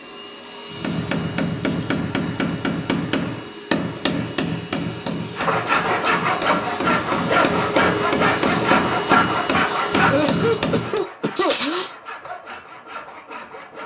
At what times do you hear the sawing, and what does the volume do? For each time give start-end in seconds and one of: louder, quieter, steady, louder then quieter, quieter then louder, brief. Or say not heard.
5.3-13.8 quieter.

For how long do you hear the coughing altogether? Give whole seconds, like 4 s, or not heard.
2 s.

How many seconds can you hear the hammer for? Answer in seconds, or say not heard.
10 s.